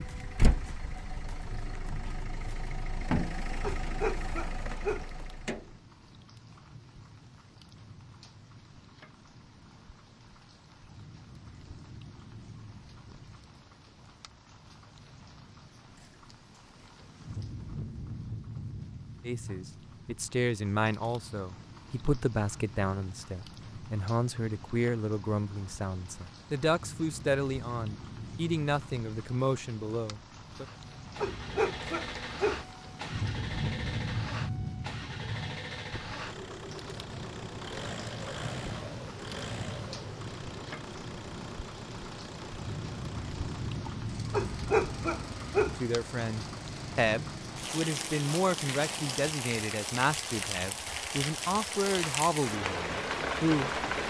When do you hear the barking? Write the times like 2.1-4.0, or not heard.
3.6-5.1, 31.1-32.6, 44.3-45.8.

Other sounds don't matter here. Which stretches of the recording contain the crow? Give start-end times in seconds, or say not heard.
not heard.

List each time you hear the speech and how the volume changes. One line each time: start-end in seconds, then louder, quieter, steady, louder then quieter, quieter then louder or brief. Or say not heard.
19.2-30.6 steady
45.8-53.8 steady.